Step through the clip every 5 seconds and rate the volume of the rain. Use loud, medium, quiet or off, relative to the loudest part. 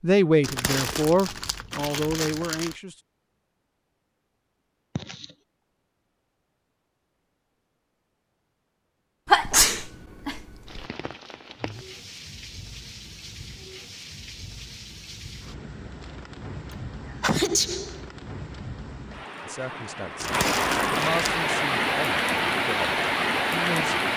off, off, quiet, quiet, loud.